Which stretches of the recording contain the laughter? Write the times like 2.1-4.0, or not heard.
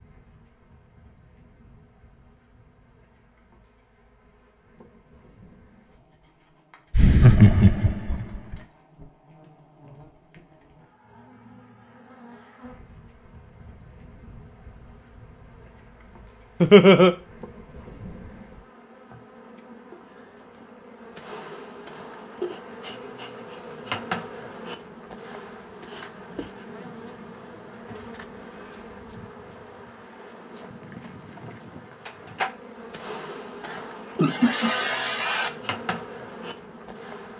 6.9-8.6, 16.6-17.1, 33.6-35.5.